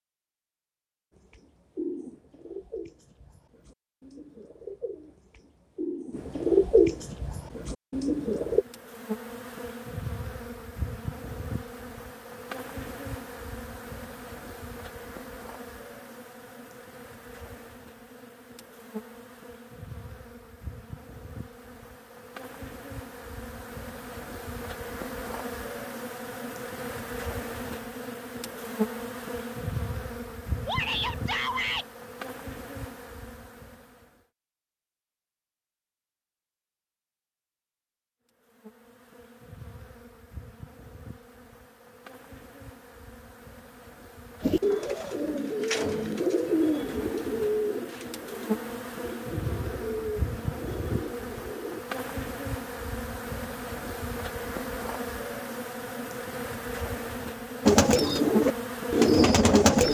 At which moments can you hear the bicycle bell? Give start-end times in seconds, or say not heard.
not heard.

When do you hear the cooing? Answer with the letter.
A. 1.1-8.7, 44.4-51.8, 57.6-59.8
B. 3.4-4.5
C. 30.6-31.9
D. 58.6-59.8
A.